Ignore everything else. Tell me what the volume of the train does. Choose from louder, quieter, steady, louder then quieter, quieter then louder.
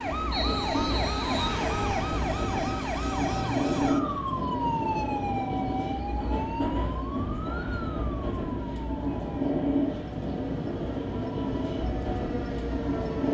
steady.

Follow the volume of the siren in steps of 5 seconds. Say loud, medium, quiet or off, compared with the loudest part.
loud, medium, medium.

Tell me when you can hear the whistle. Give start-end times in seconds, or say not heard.
0.3-1.6.